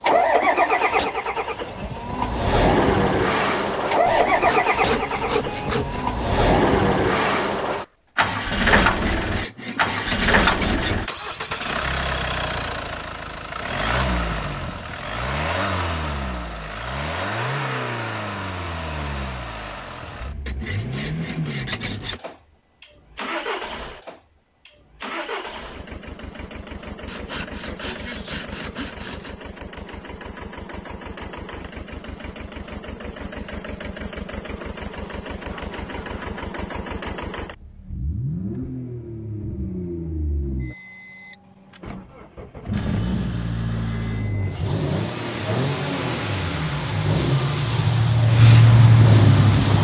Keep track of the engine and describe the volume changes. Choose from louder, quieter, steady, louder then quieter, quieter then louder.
quieter then louder.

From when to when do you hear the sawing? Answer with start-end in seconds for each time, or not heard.
4.0-6.0, 8.8-11.1, 20.4-22.2, 27.1-29.4, 34.5-36.5, 42.7-44.4.